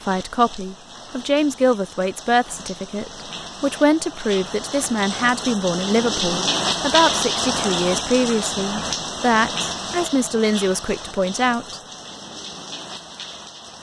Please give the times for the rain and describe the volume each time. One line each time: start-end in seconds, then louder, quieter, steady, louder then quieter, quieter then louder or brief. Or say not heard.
0.0-13.7 louder then quieter.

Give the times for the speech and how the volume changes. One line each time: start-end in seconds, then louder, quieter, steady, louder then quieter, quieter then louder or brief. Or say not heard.
0.1-11.8 steady.